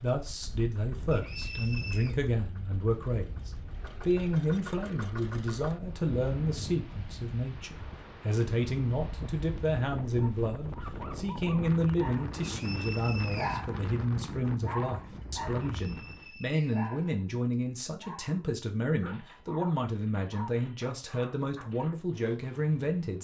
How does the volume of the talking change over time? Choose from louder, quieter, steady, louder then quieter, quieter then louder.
steady.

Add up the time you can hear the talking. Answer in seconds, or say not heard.
23 s.